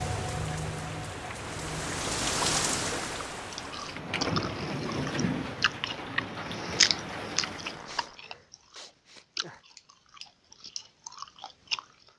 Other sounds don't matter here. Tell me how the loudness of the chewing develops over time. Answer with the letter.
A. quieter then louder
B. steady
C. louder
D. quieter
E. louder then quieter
E.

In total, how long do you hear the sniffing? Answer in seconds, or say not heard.
2 s.